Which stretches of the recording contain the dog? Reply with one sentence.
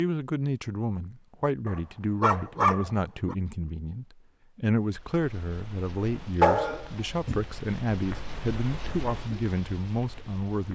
You can hear the dog from 1.6 to 3.4 s and from 6.4 to 7.5 s.